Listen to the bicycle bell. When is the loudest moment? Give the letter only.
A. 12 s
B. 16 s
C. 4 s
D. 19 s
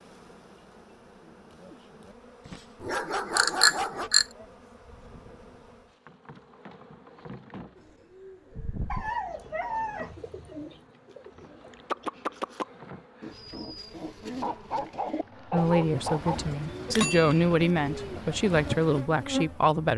C.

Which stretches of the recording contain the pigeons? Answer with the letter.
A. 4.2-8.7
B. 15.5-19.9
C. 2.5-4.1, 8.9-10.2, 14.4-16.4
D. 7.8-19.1
D.